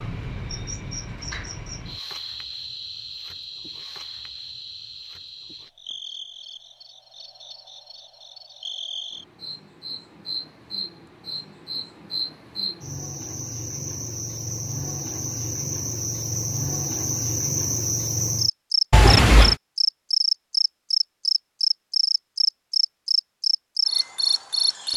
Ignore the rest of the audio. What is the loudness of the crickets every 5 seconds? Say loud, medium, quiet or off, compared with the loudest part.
quiet, quiet, medium, loud, loud.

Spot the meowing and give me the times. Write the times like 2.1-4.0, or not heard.
18.9-19.6.